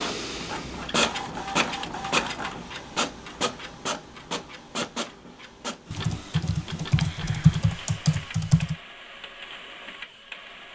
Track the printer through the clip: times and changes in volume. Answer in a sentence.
You can hear the printer from 0.0 to 10.7 s, getting quieter.